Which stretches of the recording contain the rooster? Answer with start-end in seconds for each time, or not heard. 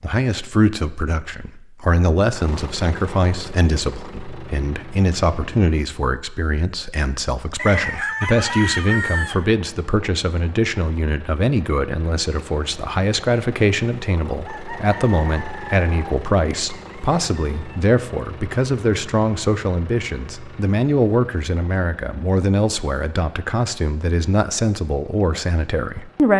7.5-9.4, 14.4-17.8.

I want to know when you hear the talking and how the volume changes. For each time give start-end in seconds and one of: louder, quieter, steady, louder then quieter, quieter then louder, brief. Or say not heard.
0.0-26.3 steady.